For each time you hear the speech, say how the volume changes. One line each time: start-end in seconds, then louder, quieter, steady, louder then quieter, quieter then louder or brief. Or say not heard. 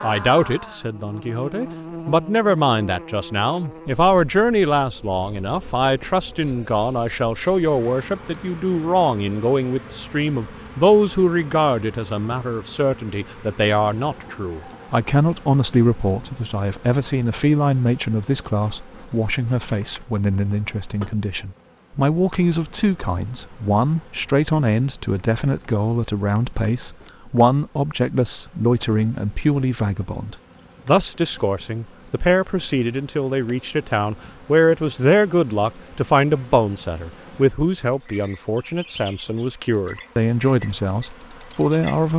0.0-42.1 steady.